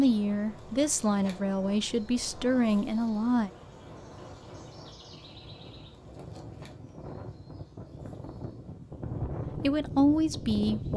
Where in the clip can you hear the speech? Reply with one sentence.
The speech can be heard from 0.0 to 3.5 s and from 9.6 to 10.9 s.